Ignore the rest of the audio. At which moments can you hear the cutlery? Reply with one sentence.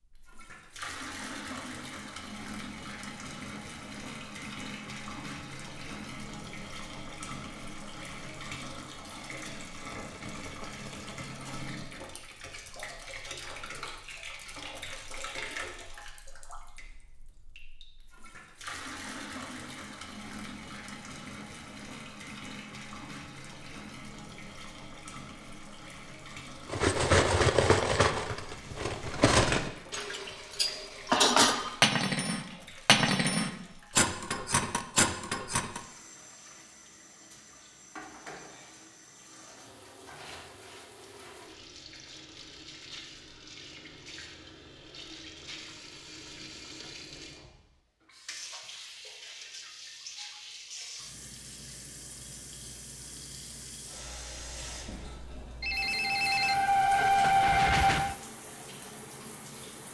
The cutlery can be heard from 26.6 to 35.8 s.